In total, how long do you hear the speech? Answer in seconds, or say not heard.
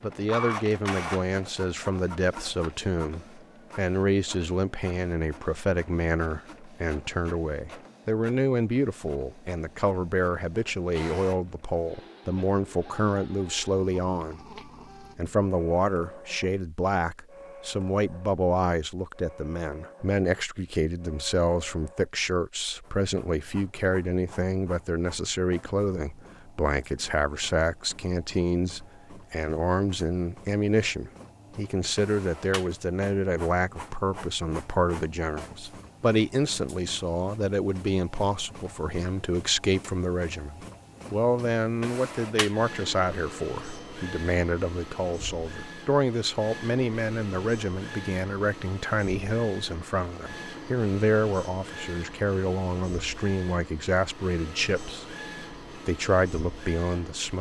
57 s.